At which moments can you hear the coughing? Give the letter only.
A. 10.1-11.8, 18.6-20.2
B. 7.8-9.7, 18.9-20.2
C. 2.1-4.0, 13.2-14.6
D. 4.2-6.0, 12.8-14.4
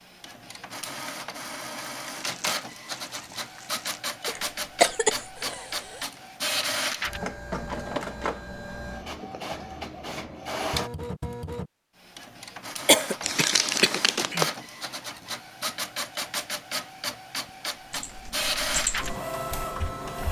D.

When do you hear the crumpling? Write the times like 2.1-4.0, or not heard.
2.1-4.0, 13.2-14.6.